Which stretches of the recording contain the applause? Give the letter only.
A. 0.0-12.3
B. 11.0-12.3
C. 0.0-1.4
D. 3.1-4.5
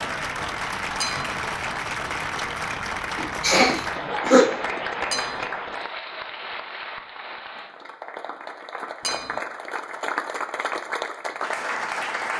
A.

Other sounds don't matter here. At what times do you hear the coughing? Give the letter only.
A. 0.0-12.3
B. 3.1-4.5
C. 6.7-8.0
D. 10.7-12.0
B.